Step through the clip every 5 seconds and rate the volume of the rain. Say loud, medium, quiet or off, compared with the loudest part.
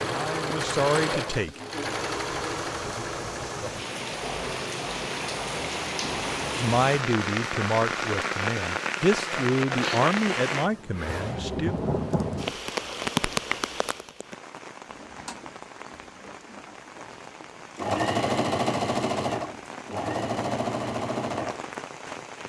medium, loud, loud, quiet, medium.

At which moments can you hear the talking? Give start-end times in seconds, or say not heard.
0.0-1.6, 6.5-11.8.